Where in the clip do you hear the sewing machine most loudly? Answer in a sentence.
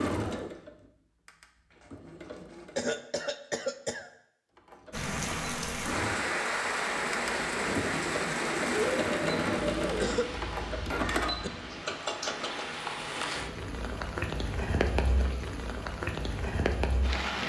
The loudest moment of the sewing machine is at 9 seconds.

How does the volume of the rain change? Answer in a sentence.
The loudness of the rain goes down, then up.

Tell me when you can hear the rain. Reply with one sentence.
The rain can be heard from 4.9 to 17.4 s.